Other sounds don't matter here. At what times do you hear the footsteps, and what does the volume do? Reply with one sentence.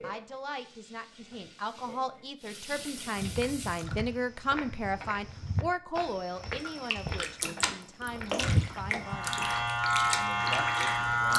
You can hear the footsteps from 3.1 to 9.2 s, getting louder.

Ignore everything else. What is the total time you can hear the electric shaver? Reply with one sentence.
The electric shaver can be heard for 2 seconds in total.